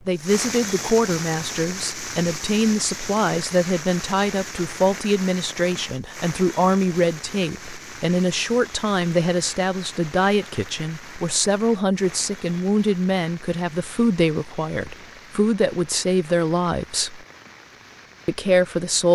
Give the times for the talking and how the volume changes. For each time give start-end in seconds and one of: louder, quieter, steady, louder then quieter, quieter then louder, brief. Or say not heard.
0.1-17.2 steady
18.2-19.1 brief.